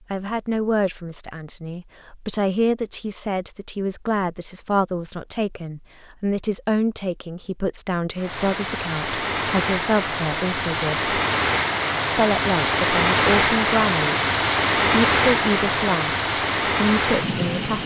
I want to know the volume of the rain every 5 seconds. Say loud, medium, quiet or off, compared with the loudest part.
off, medium, loud, loud.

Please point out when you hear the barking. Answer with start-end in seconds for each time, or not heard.
not heard.